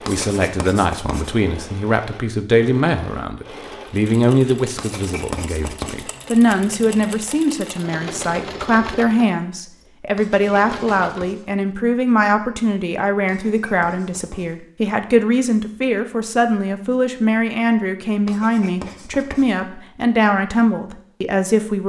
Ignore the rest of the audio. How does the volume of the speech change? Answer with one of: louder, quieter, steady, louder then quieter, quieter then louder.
steady.